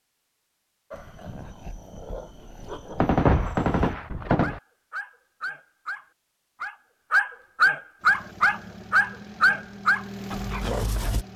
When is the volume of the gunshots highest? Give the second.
3 s.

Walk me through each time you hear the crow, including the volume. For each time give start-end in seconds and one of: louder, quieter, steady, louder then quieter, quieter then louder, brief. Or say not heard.
not heard.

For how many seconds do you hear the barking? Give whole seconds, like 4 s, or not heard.
10 s.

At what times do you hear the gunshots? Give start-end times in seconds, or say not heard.
3.0-4.6.